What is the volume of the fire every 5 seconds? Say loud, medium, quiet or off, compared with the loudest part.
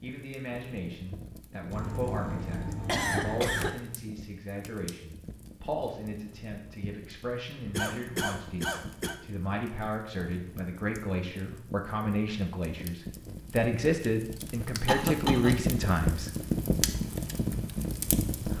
quiet, quiet, quiet, loud.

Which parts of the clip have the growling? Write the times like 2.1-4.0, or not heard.
not heard.